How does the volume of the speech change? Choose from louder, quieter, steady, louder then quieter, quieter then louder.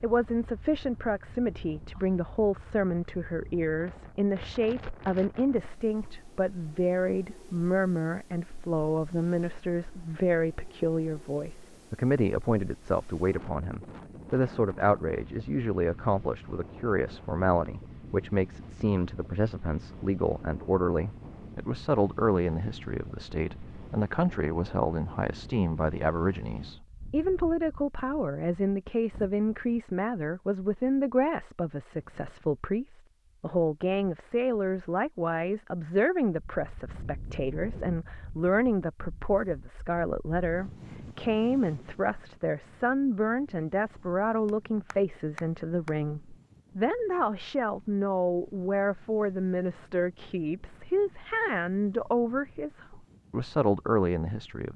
steady.